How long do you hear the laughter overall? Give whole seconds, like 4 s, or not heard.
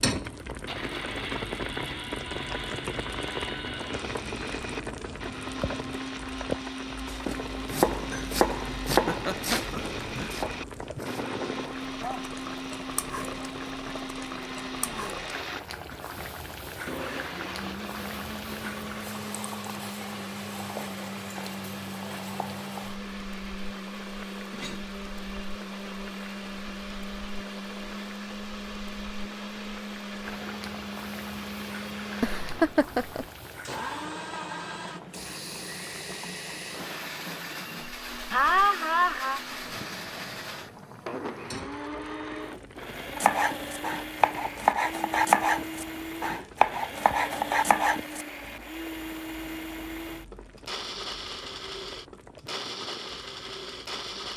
5 s.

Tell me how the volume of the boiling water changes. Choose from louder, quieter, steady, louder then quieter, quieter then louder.
quieter.